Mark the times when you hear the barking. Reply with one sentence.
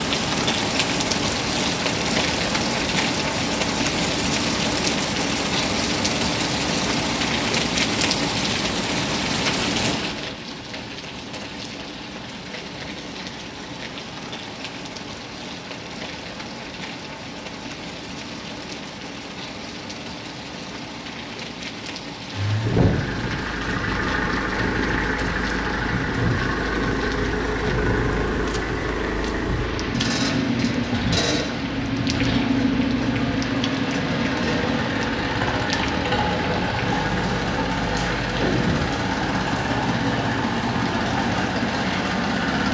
You can't hear the barking here.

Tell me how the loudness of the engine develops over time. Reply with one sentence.
The loudness of the engine stays about the same.